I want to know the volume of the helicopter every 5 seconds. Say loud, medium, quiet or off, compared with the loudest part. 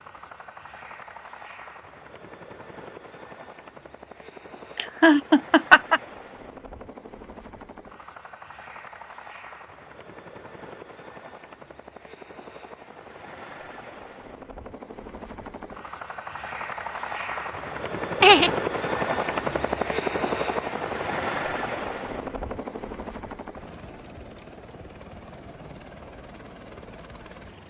quiet, quiet, quiet, loud, loud, quiet.